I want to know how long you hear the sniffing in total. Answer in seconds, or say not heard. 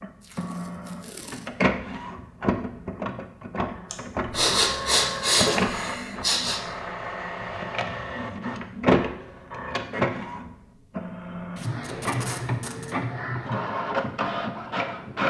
3 s.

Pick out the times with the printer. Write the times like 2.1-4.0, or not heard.
0.0-15.2.